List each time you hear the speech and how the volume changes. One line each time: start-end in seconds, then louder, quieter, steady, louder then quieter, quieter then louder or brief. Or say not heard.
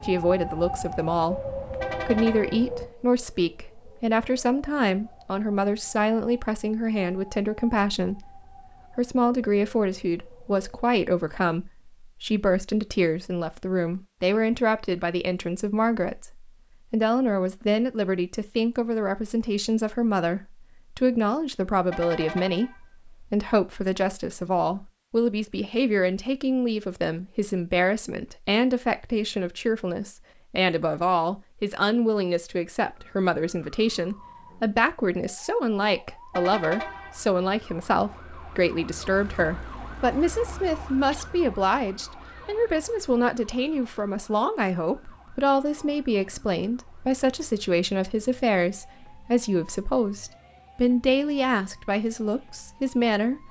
0.0-53.4 steady.